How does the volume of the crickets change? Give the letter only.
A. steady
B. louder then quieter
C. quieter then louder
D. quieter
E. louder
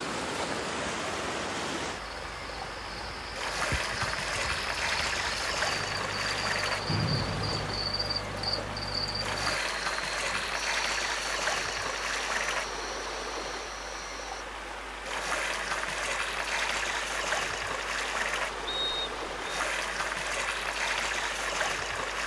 B.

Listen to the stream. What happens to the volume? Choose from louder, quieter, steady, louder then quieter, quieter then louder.
steady.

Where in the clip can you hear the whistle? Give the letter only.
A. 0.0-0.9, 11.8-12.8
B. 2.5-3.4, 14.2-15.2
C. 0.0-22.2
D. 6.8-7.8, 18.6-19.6
D.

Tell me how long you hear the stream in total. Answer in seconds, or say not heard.
22 s.